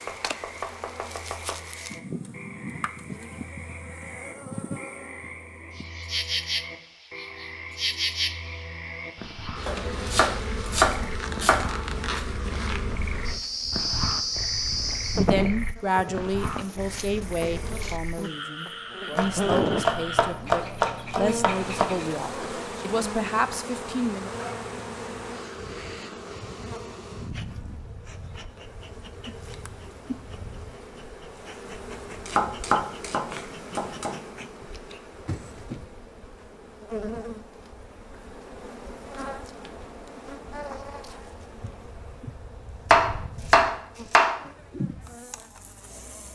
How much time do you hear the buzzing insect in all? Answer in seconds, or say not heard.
46 s.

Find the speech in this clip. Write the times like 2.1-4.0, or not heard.
15.2-24.3.